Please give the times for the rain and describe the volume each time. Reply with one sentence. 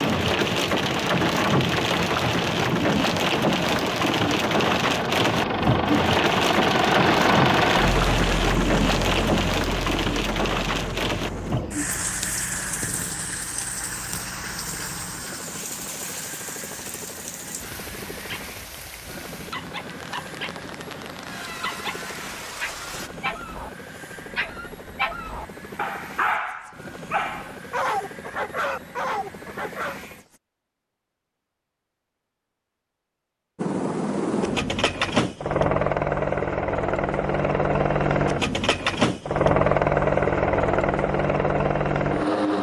You can hear the rain from 0.0 to 23.1 s, getting quieter.